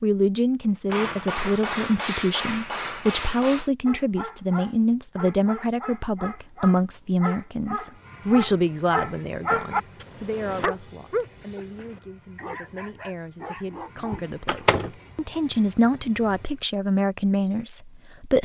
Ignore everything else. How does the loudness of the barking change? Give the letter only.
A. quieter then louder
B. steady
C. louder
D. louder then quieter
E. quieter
D.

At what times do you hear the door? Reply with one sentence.
You can hear the door from 14.1 to 14.9 s.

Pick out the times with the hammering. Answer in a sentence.
You can hear the hammering from 0.8 to 3.7 s.